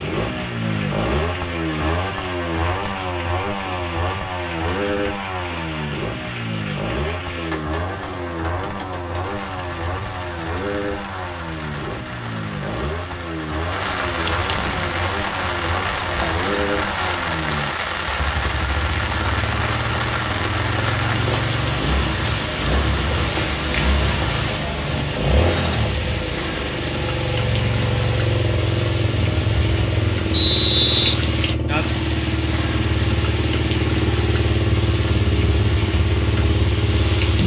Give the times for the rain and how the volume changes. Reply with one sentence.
You can hear the rain from 0.0 to 37.4 s, getting louder.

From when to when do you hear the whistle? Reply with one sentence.
You can hear the whistle from 30.3 to 31.1 s.